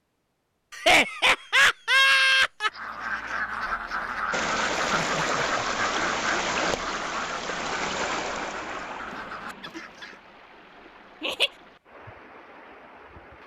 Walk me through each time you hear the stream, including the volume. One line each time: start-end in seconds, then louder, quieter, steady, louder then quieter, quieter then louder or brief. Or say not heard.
4.3-13.4 quieter.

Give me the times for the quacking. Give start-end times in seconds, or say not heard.
2.6-10.3.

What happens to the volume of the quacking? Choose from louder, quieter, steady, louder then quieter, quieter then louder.
quieter.